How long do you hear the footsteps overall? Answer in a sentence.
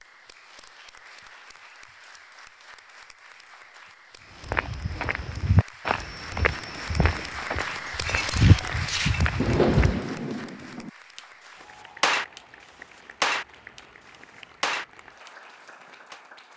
The footsteps can be heard for 6 seconds in total.